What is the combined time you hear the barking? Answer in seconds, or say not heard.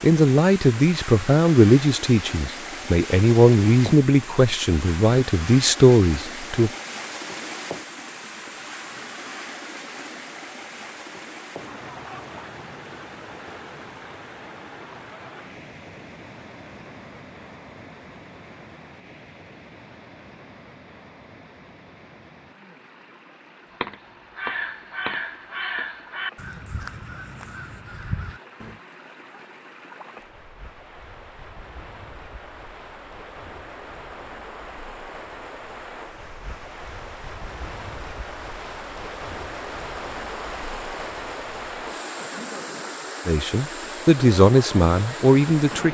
not heard.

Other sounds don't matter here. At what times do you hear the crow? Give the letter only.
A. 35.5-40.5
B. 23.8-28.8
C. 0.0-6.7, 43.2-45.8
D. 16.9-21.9
B.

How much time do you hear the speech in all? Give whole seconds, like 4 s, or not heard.
9 s.